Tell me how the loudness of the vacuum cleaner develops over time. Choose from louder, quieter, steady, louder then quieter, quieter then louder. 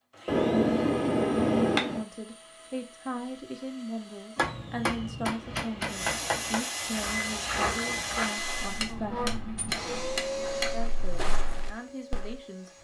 louder.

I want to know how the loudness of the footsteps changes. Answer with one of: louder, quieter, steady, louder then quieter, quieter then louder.
quieter then louder.